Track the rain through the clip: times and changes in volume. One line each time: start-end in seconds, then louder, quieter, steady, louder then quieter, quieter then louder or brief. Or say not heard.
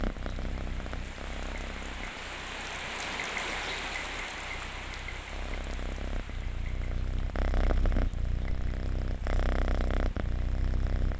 0.0-11.1 louder then quieter.